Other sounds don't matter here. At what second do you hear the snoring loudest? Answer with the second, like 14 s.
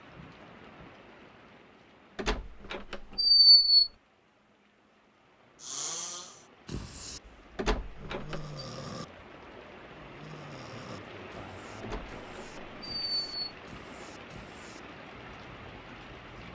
6 s.